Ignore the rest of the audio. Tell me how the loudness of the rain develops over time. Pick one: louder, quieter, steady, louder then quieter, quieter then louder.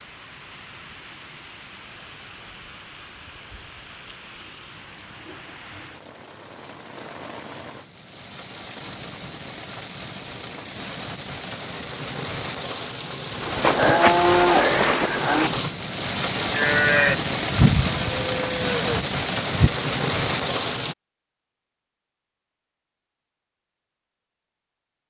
louder.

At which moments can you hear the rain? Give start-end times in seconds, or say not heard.
0.0-20.9.